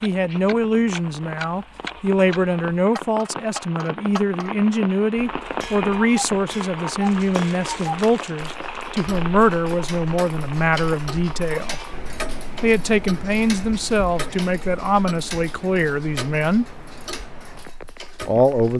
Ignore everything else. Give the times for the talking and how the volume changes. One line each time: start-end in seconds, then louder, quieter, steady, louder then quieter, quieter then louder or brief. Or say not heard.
0.0-11.8 steady
12.6-16.6 steady
18.2-18.7 brief.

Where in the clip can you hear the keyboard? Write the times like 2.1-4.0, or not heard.
not heard.